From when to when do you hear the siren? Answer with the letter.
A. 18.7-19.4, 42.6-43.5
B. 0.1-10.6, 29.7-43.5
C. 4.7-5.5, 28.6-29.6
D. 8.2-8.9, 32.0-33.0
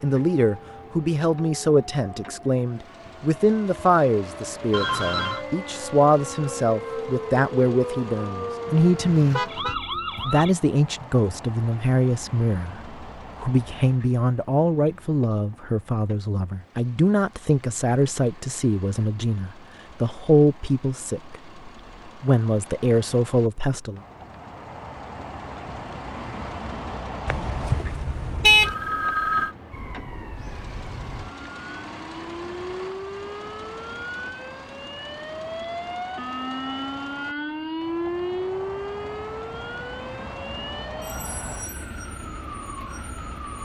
B.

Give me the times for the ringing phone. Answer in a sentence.
The ringing phone can be heard from 4.7 to 5.5 s and from 28.6 to 29.6 s.